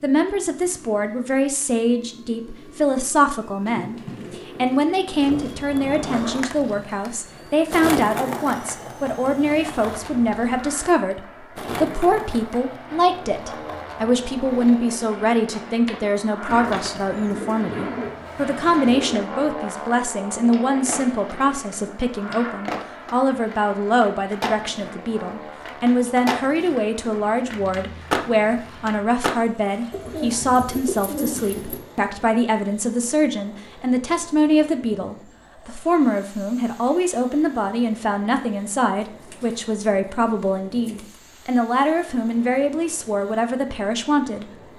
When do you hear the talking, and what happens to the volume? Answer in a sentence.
You can hear the talking from 0.0 to 44.5 s, at a steady volume.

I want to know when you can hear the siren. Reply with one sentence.
The siren can't be heard in this clip.